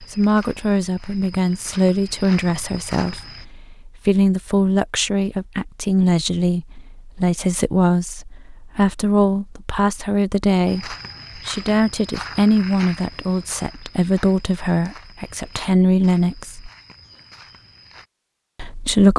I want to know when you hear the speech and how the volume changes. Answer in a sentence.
The speech can be heard from 0.0 to 16.7 s, at a steady volume; and briefly from 18.6 to 19.1 s.